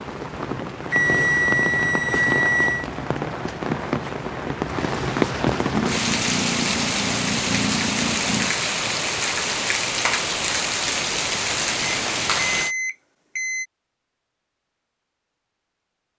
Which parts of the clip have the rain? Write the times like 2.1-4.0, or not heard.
0.0-12.8.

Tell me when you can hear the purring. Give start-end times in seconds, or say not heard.
5.7-8.5.